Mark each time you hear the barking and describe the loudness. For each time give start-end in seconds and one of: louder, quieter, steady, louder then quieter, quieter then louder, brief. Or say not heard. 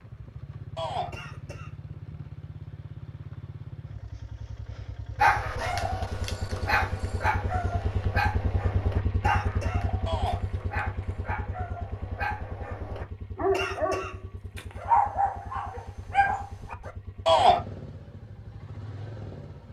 5.2-16.9 quieter then louder.